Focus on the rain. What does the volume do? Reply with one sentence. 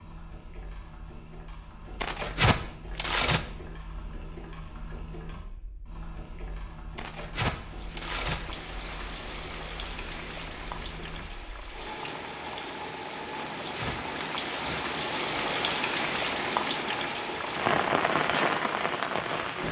The loudness of the rain goes up.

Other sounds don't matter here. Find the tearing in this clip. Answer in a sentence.
You can hear the tearing from 2.0 to 3.4 s, from 7.0 to 8.4 s and from 13.6 to 14.8 s.